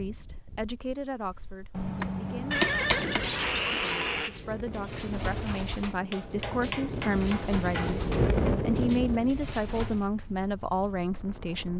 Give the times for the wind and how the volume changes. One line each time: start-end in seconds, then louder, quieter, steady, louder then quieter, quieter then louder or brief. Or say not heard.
0.0-11.7 louder then quieter.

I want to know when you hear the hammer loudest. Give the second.
3 s.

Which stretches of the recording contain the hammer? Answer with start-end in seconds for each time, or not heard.
1.8-3.2, 6.1-8.1.